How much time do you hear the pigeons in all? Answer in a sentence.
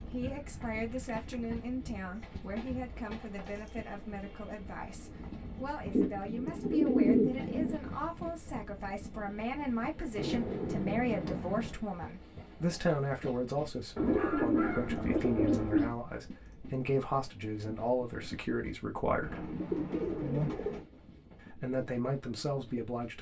You can hear the pigeons for 10 seconds altogether.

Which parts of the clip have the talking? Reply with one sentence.
The talking can be heard from 0.0 to 19.5 s and from 21.5 to 23.1 s.